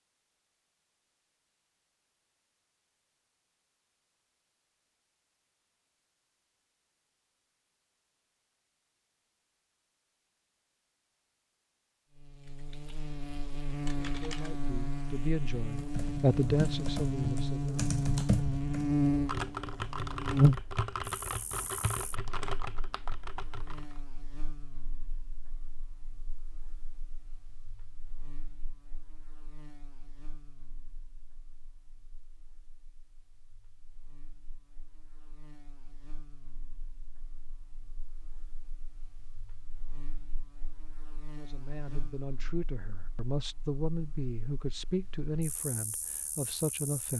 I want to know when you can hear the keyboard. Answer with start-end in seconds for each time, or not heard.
12.4-24.0.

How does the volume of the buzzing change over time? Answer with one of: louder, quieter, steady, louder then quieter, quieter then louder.
quieter then louder.